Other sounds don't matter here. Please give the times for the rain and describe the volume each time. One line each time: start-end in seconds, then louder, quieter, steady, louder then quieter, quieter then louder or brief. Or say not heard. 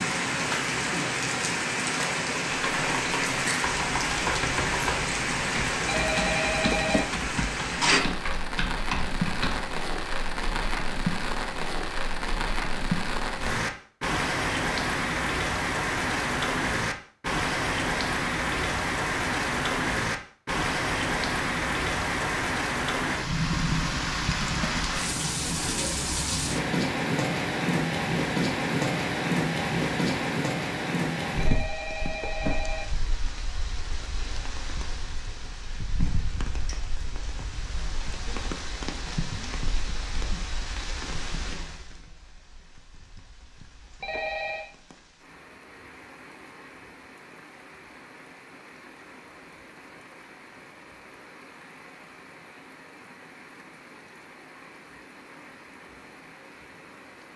0.0-57.3 quieter.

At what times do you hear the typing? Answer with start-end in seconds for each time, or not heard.
2.5-9.7.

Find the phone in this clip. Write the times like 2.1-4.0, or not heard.
5.8-7.1, 31.4-32.9, 44.0-44.7.